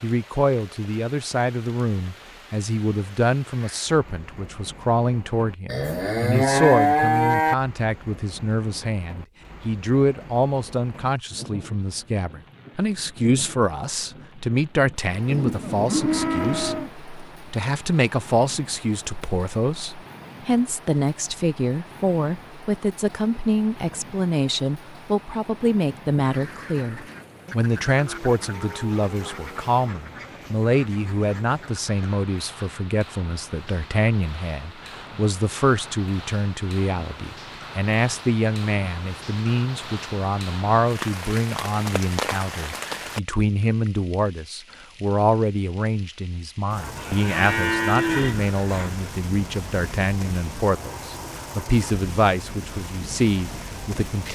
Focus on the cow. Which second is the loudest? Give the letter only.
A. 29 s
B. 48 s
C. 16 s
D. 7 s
D.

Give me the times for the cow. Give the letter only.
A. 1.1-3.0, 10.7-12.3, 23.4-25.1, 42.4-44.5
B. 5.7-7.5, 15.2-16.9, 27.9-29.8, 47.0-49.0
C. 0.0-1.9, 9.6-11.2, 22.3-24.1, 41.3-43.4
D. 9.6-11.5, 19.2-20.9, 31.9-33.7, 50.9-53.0
B.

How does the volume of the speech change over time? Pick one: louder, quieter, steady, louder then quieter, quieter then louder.
steady.